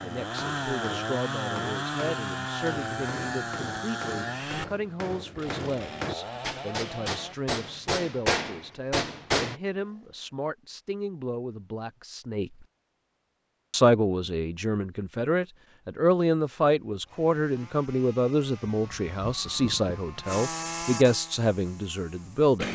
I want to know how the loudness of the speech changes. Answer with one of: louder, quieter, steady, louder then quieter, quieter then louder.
louder.